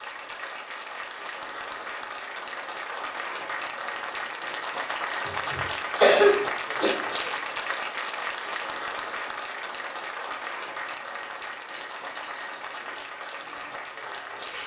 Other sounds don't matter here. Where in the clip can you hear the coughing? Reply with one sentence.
You can hear the coughing from 5.2 to 7.0 s.